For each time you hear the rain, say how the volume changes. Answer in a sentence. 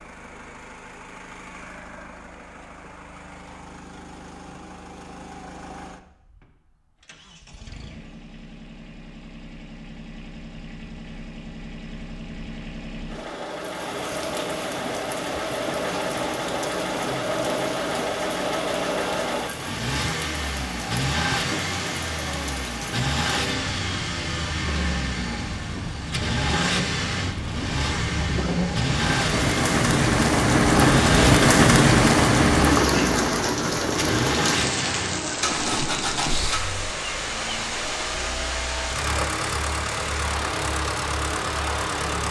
The rain can be heard from 13.4 to 42.2 s, getting louder then quieter.